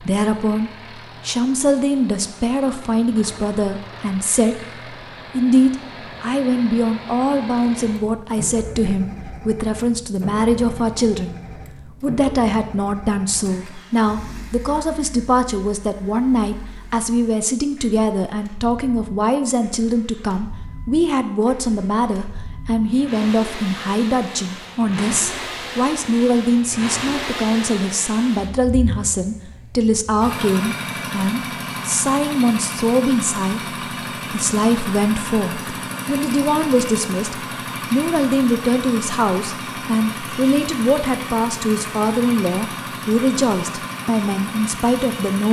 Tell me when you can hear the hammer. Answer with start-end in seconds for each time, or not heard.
not heard.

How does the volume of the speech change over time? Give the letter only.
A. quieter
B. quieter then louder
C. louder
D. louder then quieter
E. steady
E.